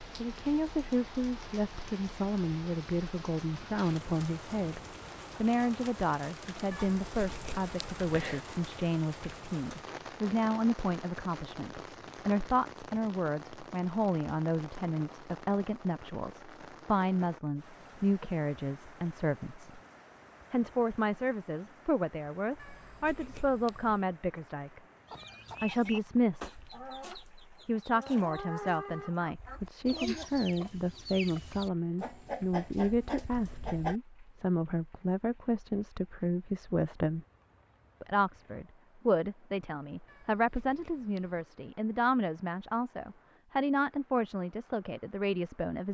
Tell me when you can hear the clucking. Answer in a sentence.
You can hear the clucking from 25.1 to 34.0 s.